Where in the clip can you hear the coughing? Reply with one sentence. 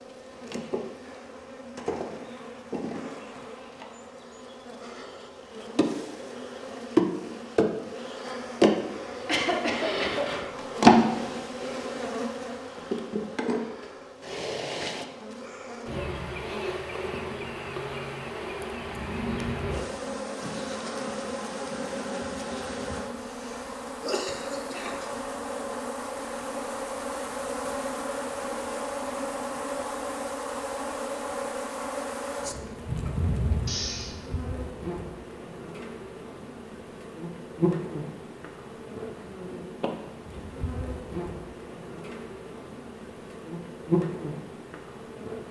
The coughing can be heard from 9.2 to 10.3 s, from 23.2 to 25.1 s and from 33.6 to 34.2 s.